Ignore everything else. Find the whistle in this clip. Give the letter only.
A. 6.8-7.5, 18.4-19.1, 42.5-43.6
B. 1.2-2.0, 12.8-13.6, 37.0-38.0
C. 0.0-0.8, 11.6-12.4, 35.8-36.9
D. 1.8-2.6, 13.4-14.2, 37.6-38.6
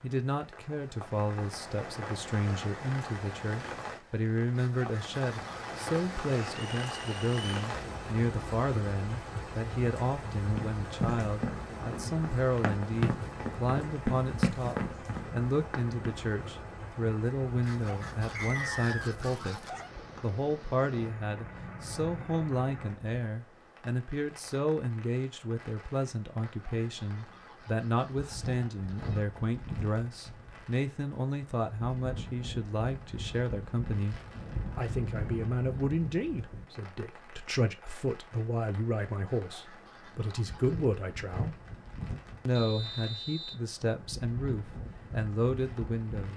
A.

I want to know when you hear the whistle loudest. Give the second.
19 s.